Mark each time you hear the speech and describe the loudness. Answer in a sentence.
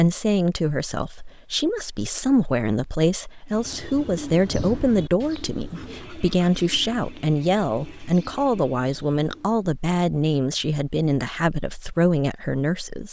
You can hear the speech from 0.0 to 13.0 s, at a steady volume.